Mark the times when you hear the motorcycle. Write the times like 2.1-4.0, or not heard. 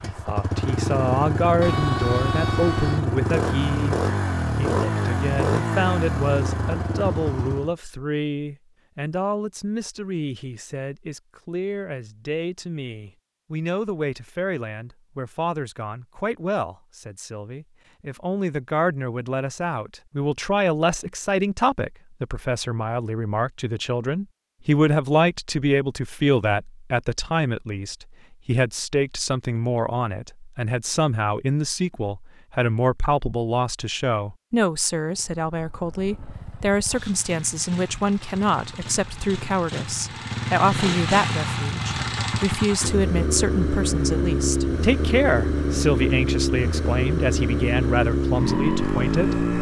0.0-7.8, 35.0-49.5.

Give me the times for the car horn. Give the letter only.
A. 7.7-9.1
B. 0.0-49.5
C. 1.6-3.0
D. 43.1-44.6
C.